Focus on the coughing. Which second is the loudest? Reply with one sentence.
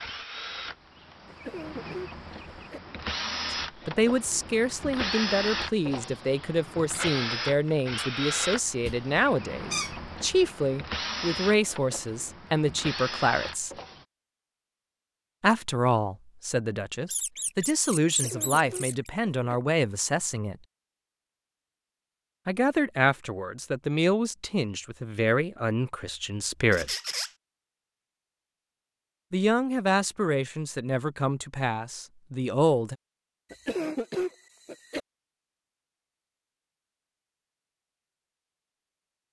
The loudest moment of the coughing is at 34 seconds.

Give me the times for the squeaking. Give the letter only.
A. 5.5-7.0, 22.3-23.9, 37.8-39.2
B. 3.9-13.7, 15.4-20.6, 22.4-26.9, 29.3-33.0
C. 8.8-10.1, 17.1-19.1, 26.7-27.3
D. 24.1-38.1
C.